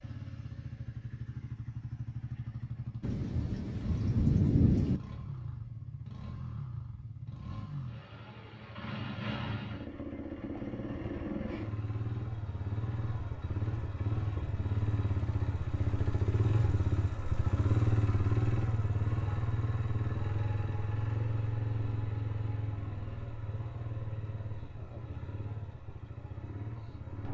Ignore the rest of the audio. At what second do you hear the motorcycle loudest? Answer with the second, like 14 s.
18 s.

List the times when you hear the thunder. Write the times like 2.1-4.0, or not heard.
3.0-5.0.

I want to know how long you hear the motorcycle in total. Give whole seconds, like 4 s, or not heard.
27 s.